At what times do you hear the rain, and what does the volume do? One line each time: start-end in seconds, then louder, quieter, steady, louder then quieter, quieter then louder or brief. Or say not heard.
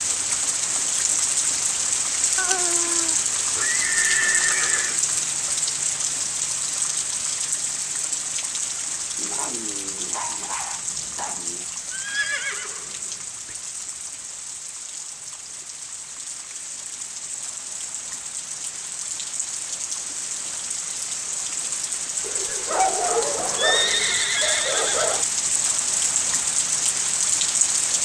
0.0-27.9 quieter then louder.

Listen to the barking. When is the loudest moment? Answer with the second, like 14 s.
23 s.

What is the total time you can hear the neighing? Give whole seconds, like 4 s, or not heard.
6 s.